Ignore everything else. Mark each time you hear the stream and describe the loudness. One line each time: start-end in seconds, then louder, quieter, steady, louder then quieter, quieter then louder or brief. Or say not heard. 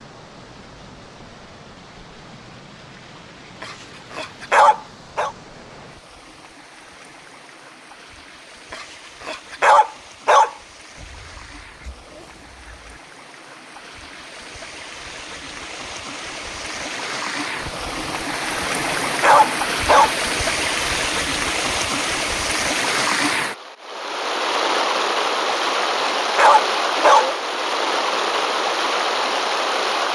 0.0-30.1 louder.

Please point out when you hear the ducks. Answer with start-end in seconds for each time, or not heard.
10.9-12.9.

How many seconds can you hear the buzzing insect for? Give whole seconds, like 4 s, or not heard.
not heard.